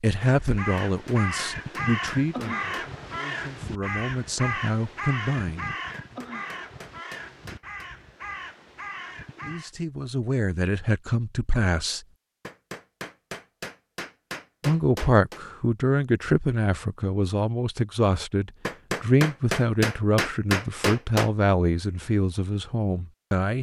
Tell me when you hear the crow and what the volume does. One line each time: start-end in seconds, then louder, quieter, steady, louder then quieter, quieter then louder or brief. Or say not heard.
0.2-9.7 quieter.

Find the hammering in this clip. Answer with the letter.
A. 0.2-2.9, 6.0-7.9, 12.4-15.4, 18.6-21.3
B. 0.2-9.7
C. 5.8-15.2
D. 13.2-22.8
A.